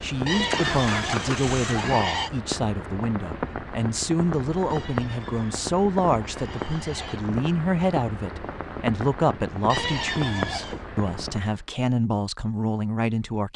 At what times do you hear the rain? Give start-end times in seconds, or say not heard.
0.0-11.6.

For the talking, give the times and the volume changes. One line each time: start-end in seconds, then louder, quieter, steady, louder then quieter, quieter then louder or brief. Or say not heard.
0.0-13.5 steady.